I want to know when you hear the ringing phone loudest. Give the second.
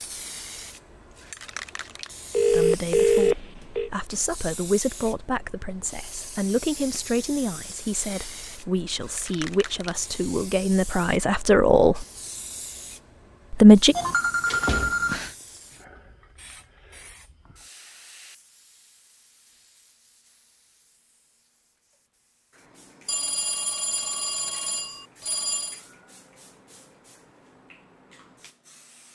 3 s.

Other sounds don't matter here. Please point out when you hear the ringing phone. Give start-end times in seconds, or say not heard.
2.3-3.9, 13.9-15.3, 23.1-25.8.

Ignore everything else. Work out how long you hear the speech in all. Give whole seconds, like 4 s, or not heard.
10 s.